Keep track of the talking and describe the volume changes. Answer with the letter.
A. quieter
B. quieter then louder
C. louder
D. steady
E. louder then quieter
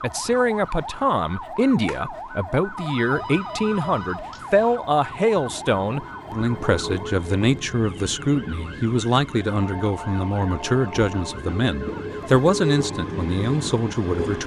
D.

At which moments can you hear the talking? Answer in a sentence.
The talking can be heard from 0.0 to 14.4 s.